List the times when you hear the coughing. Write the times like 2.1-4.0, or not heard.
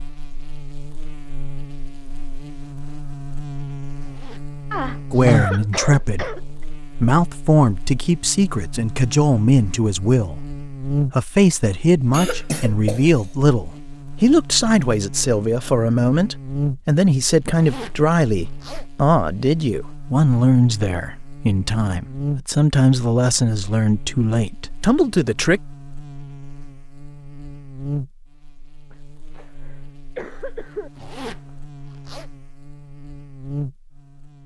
4.7-6.7, 12.1-13.2, 28.9-30.9.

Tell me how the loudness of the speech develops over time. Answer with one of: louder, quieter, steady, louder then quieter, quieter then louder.
steady.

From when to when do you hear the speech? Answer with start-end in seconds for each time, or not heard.
5.1-25.6.